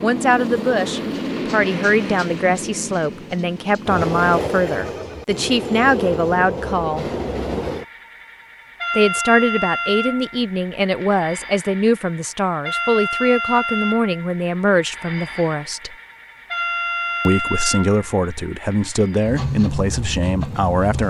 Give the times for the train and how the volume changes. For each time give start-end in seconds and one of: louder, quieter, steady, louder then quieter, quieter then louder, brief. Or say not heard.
0.0-21.0 steady.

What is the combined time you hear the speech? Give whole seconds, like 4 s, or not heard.
18 s.